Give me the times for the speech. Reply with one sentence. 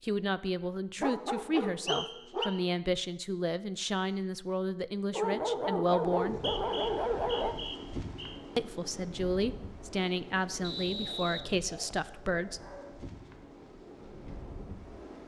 You can hear the speech from 0.0 to 6.4 s and from 8.6 to 12.6 s.